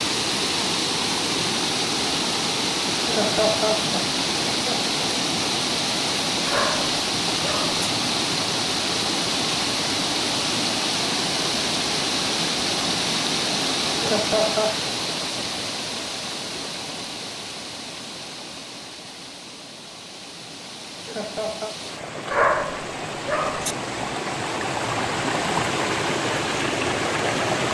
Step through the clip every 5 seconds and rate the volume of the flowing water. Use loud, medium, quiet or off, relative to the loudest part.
loud, loud, loud, medium, medium, loud.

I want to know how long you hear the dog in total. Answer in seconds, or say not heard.
3 s.